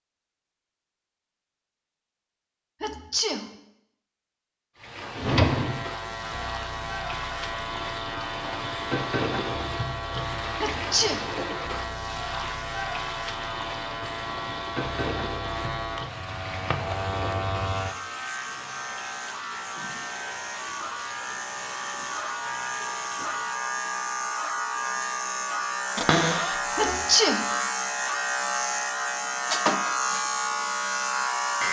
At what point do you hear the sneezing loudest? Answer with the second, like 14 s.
27 s.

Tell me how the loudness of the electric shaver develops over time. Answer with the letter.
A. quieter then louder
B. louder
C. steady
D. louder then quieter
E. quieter
B.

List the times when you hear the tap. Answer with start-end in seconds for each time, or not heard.
4.8-23.8.